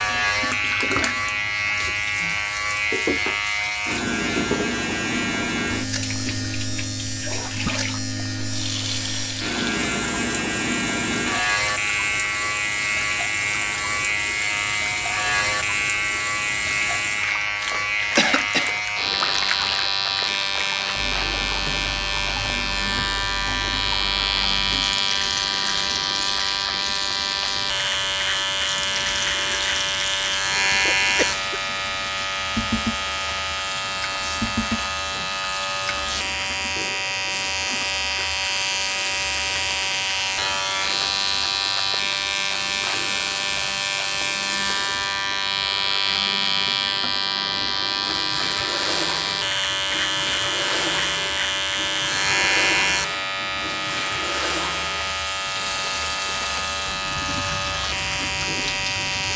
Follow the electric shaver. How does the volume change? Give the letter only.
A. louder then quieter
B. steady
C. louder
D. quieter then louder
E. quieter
B.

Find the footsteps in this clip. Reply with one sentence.
You can't hear the footsteps here.